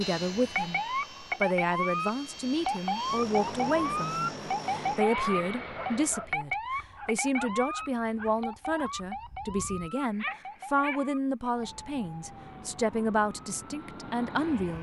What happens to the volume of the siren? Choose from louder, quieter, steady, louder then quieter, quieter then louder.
quieter.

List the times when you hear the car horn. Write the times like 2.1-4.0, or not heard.
not heard.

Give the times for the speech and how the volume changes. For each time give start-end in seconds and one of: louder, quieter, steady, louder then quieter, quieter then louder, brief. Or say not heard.
0.0-14.7 steady.